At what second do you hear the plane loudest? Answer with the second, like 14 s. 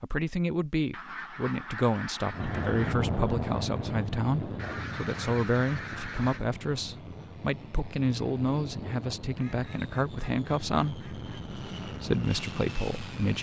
3 s.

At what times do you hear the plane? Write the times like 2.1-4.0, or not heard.
2.3-13.3.